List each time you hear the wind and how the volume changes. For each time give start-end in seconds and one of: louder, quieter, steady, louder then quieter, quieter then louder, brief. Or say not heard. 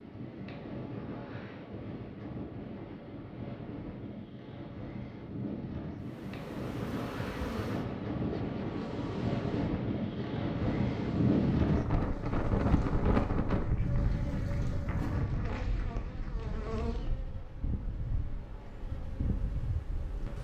0.0-20.3 louder then quieter.